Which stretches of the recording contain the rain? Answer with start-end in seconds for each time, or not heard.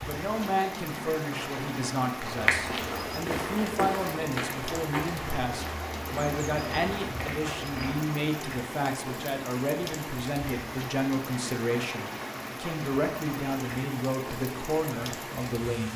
0.0-15.9.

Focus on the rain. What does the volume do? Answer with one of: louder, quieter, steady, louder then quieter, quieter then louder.
steady.